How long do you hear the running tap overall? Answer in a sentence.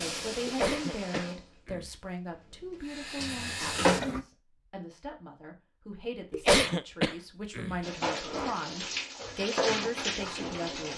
The running tap can be heard for 7 seconds in total.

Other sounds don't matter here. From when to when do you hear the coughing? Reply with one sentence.
The coughing can be heard from 0.5 to 1.9 s and from 6.3 to 7.8 s.